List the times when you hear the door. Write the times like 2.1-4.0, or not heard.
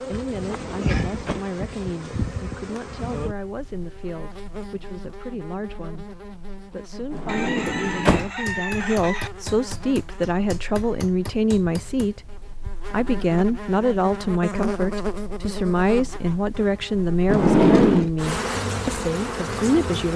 0.4-1.5, 7.1-8.3, 17.2-18.1.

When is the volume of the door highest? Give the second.
18 s.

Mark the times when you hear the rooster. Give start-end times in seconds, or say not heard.
7.2-9.3.